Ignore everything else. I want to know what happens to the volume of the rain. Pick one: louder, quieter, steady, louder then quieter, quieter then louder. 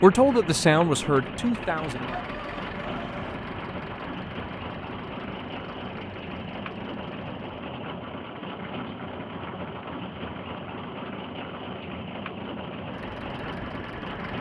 steady.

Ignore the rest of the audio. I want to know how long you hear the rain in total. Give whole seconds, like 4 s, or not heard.
14 s.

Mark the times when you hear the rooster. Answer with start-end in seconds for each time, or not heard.
1.9-3.4.